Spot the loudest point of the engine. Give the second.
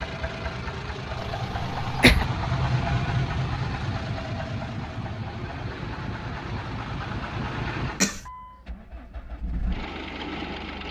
3 s.